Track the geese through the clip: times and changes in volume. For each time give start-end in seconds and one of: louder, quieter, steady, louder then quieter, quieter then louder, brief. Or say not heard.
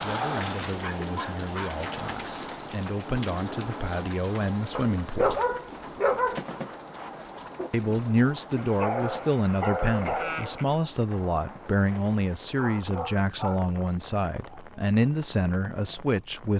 not heard.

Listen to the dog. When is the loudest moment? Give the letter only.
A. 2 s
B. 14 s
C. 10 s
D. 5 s
D.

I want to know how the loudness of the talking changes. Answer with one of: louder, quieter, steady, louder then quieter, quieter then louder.
louder.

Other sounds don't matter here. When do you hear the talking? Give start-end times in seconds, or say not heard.
0.0-5.4, 7.7-16.5.